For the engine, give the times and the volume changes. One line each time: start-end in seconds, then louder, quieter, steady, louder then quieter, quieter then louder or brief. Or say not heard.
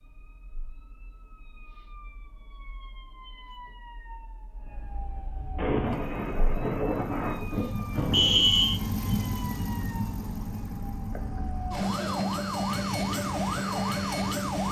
5.8-14.6 louder then quieter.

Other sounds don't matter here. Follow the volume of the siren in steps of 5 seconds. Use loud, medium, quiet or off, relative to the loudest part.
quiet, quiet, loud.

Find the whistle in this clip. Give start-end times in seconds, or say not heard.
8.1-8.8.